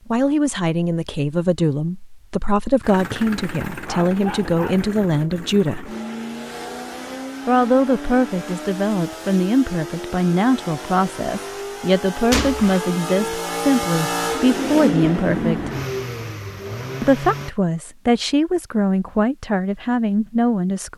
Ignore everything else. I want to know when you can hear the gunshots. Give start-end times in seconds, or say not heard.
12.3-12.8.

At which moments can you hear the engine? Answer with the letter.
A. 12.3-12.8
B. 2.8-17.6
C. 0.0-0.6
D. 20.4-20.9
B.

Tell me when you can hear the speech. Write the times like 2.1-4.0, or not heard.
0.1-6.0, 7.5-15.7, 17.0-20.9.